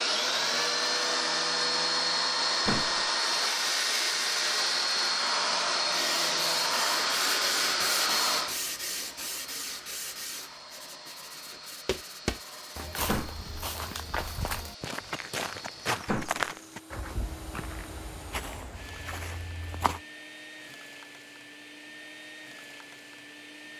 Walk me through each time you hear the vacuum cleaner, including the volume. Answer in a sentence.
The vacuum cleaner can be heard from 0.0 to 23.7 s, getting quieter.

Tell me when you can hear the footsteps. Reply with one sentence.
You can hear the footsteps from 11.8 to 20.0 s.